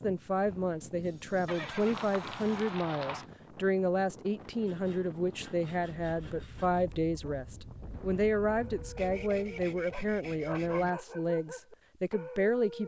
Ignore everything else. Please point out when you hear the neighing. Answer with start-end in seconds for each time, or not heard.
1.4-3.3.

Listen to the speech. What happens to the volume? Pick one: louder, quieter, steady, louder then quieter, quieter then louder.
steady.